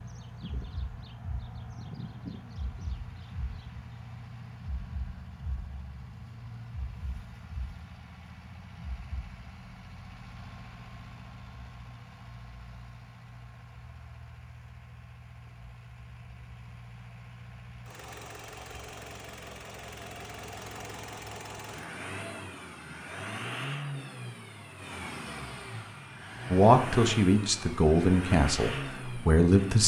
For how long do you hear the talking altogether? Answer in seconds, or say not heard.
3 s.